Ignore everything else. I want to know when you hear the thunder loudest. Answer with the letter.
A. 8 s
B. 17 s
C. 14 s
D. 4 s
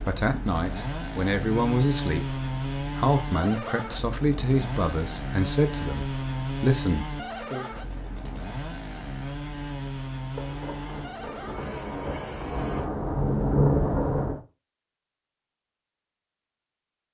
C.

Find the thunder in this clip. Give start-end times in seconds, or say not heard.
10.3-14.4.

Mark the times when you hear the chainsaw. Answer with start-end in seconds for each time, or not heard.
0.0-12.9.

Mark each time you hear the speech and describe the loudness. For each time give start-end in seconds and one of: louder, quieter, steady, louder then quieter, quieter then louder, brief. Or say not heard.
0.0-7.7 steady.